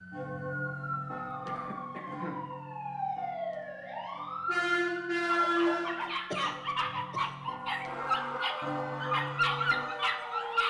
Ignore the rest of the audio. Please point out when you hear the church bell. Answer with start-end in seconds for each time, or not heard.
0.1-9.9.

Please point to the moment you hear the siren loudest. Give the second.
5 s.